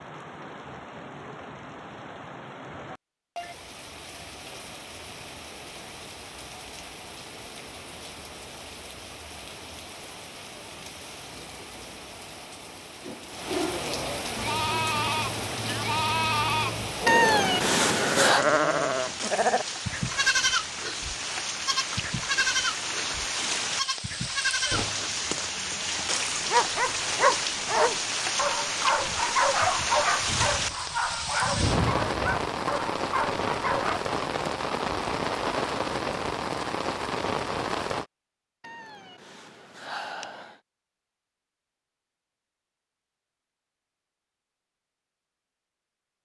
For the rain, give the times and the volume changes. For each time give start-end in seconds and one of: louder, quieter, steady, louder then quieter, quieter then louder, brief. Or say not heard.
0.0-38.0 louder.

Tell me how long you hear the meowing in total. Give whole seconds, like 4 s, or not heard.
3 s.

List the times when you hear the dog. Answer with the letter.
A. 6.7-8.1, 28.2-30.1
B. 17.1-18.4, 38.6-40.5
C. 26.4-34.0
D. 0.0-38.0
C.